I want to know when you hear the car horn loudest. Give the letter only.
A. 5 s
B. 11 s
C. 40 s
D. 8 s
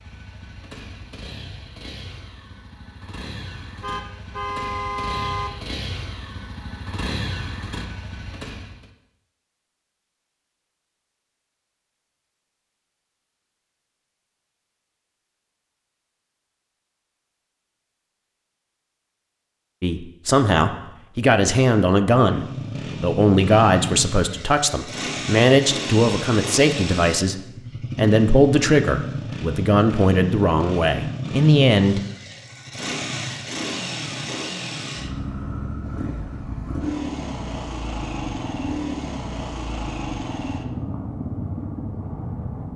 A.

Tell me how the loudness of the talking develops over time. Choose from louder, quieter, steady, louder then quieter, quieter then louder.
steady.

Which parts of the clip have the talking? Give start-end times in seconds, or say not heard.
19.8-32.0.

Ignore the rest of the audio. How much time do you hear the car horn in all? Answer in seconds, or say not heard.
2 s.